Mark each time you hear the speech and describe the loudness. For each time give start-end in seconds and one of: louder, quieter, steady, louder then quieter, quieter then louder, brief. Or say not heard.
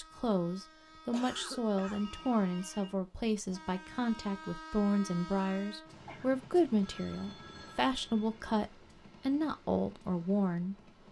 0.0-10.9 steady.